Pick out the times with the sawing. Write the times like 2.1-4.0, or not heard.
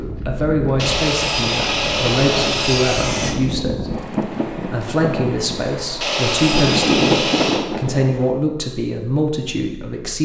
0.8-3.4, 6.0-7.7.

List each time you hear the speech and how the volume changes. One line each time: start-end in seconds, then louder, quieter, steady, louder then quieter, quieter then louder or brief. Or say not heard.
0.0-10.1 steady.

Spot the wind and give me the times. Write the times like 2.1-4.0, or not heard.
0.0-8.3.